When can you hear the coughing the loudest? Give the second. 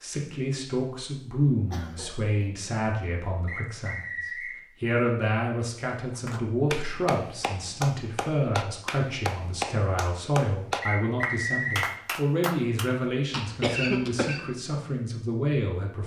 14 s.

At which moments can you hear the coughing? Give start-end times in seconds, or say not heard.
1.7-2.5, 13.3-14.6.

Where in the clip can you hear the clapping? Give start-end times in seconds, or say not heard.
6.1-12.9.